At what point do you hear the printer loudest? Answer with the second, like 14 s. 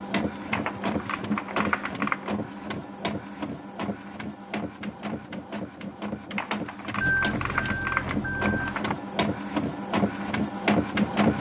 11 s.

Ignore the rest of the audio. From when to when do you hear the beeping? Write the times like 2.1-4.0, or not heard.
7.0-8.8.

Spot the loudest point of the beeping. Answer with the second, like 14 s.
7 s.